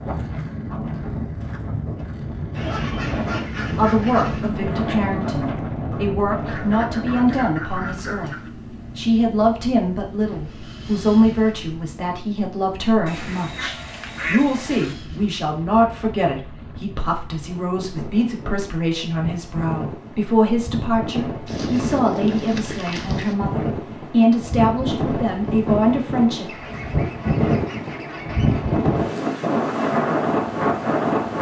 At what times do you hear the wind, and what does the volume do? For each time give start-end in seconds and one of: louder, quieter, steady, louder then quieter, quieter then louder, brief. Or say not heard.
0.0-31.3 quieter then louder.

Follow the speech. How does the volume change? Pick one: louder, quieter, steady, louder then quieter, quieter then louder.
steady.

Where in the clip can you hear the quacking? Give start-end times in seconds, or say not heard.
2.5-4.5, 6.5-8.5, 13.1-14.9, 21.4-23.4, 26.4-28.8.